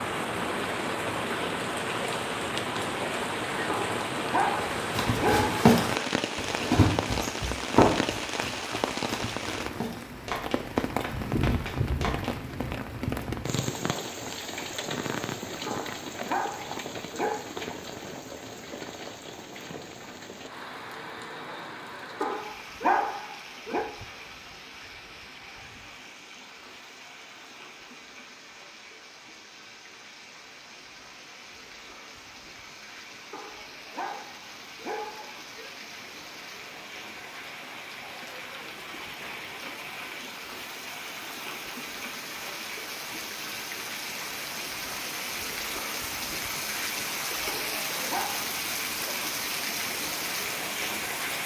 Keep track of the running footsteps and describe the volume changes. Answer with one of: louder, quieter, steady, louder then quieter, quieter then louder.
quieter.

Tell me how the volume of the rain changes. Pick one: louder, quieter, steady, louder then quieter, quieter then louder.
quieter then louder.